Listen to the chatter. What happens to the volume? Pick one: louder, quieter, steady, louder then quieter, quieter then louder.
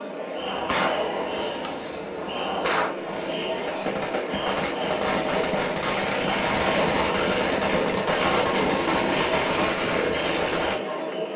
steady.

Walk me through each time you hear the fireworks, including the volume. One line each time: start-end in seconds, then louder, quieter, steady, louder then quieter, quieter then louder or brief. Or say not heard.
0.3-10.8 louder.